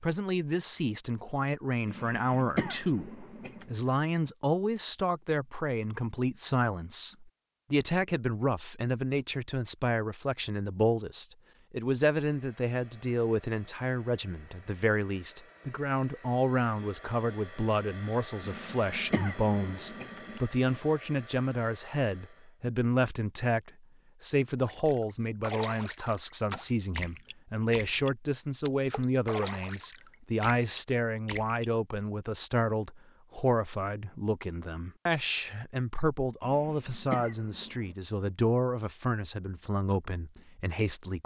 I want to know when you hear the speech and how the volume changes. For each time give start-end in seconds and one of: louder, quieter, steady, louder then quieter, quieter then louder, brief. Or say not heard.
0.0-41.2 steady.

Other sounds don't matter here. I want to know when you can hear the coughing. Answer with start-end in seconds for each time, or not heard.
1.9-3.6, 18.4-20.4, 36.4-38.0.